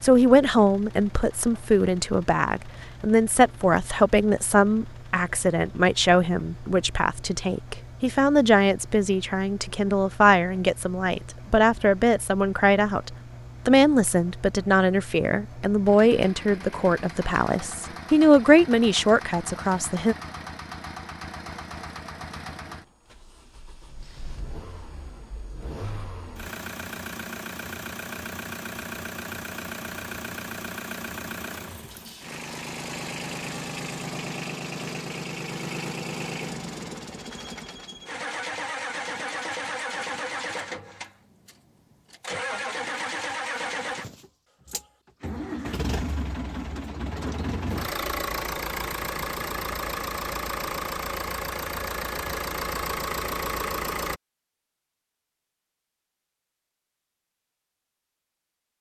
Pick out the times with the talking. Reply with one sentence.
You can hear the talking from 0.0 to 20.1 s.